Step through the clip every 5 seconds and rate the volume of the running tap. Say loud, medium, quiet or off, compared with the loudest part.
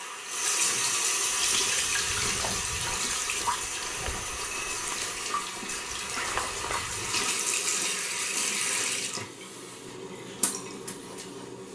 loud, loud, medium.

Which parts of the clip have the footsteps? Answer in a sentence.
You can hear the footsteps from 1.4 to 7.3 s.